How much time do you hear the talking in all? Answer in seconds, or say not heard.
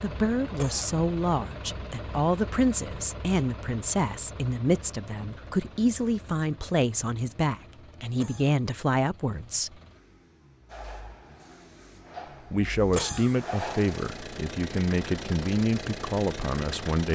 14 s.